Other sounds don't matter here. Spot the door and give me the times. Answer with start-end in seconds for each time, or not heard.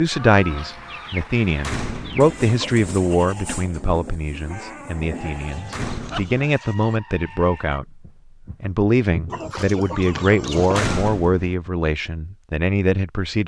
1.6-2.4, 5.7-6.5, 10.7-11.6.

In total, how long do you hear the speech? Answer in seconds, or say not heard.
13 s.